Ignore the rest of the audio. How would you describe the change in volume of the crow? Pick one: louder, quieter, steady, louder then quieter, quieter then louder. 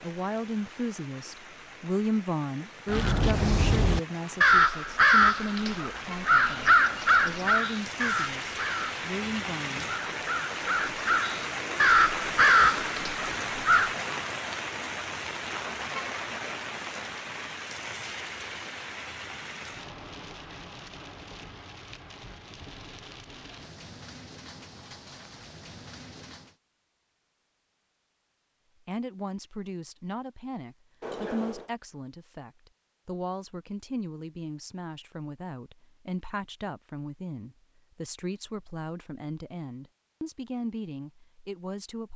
quieter then louder.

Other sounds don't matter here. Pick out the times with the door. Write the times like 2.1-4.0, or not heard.
31.0-31.7.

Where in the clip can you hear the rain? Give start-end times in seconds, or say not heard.
0.0-26.6.